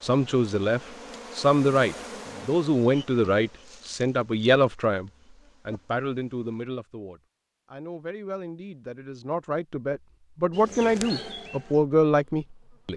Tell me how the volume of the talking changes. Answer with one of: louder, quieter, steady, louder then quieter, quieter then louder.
quieter then louder.